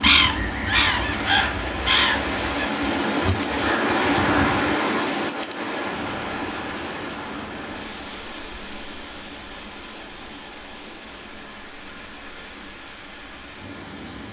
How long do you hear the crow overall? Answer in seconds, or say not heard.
5 s.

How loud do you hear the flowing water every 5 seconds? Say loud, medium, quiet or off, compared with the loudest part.
loud, medium, quiet.